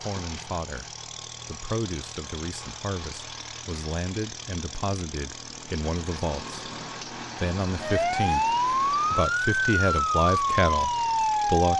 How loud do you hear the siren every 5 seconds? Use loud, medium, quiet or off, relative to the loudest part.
off, loud, loud.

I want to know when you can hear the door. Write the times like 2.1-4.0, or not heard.
not heard.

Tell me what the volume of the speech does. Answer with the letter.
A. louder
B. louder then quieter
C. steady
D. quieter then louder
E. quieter
A.